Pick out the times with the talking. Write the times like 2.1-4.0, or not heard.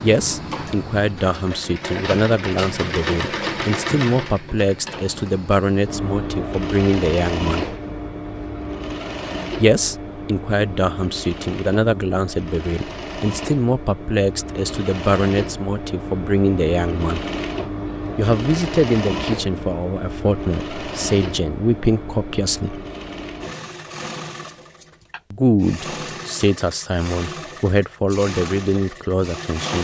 0.0-7.8, 9.6-17.3, 18.1-22.9, 25.3-29.7.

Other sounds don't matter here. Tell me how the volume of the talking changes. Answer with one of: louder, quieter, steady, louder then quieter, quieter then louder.
steady.